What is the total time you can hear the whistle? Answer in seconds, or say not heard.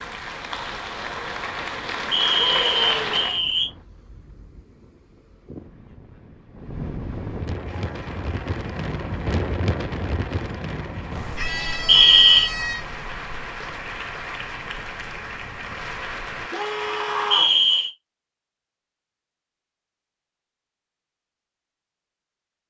3 s.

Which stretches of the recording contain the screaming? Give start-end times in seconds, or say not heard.
2.5-3.5, 11.3-12.8, 16.5-17.6.